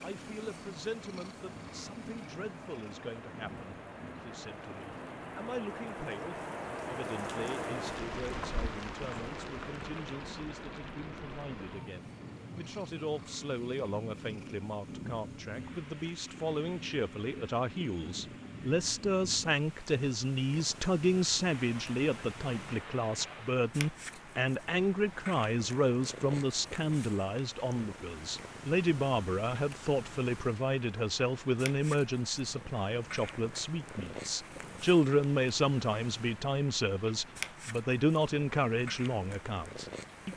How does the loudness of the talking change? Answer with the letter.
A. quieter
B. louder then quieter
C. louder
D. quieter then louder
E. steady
C.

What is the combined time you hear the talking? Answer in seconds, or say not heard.
40 s.